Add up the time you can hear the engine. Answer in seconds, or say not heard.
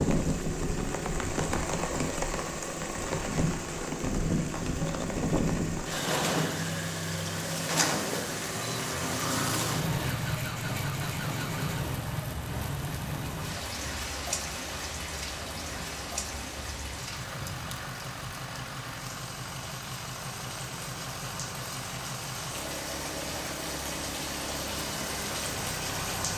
26 s.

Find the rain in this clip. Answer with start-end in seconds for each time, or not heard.
0.0-26.3.